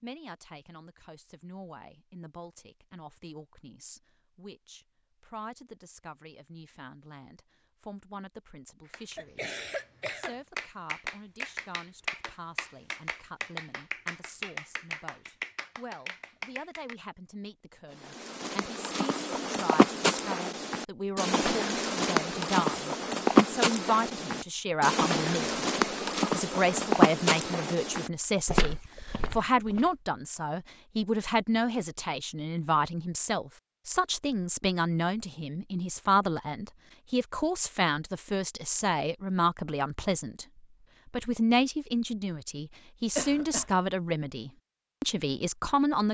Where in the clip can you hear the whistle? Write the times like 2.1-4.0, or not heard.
not heard.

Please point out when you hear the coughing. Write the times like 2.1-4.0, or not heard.
9.2-10.3, 43.1-43.7.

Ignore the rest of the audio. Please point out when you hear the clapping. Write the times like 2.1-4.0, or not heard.
8.8-16.9.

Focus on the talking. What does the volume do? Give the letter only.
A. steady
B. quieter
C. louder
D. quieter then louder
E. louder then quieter
C.